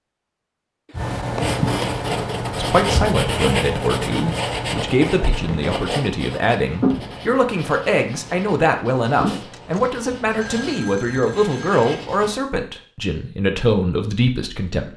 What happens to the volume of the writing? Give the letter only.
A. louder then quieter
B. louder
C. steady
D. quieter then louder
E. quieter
E.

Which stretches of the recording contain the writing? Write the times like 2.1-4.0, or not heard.
0.9-12.3.